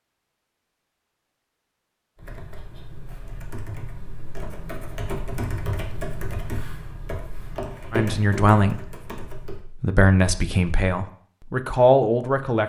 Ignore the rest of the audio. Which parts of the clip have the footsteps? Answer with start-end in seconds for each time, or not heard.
not heard.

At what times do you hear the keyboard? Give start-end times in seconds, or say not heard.
2.1-9.7.